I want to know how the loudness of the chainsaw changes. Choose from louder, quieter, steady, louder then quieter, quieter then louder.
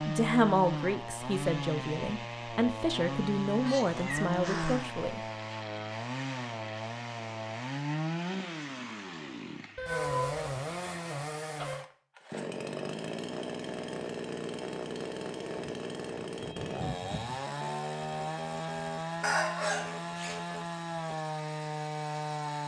steady.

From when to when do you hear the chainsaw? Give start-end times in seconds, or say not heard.
0.0-22.6.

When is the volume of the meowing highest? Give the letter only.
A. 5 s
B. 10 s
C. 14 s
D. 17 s
B.